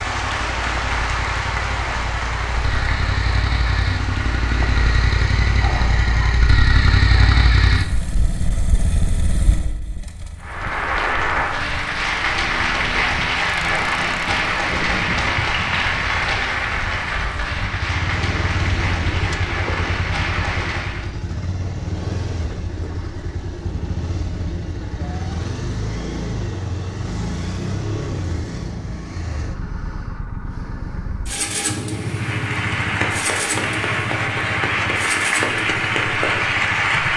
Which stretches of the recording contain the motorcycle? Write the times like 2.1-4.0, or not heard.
0.0-37.1.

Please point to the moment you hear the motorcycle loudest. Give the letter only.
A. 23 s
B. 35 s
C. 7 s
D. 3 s
C.